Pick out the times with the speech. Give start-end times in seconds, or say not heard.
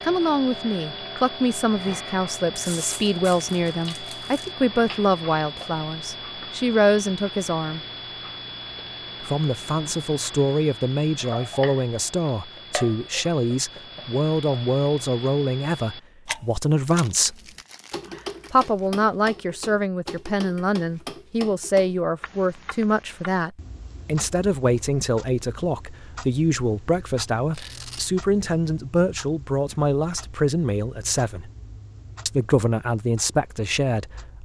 0.0-7.8, 9.2-17.4, 18.5-31.5, 32.2-34.4.